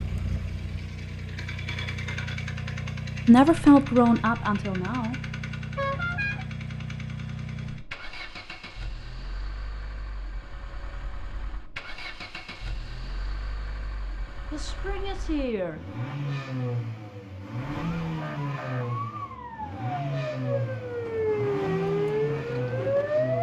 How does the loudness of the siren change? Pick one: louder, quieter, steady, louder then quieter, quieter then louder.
louder.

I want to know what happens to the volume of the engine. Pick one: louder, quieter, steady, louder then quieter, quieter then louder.
quieter then louder.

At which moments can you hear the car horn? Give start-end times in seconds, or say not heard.
5.8-6.5.